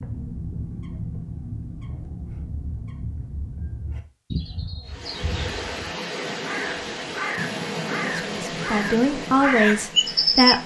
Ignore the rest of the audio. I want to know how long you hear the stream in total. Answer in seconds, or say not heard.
6 s.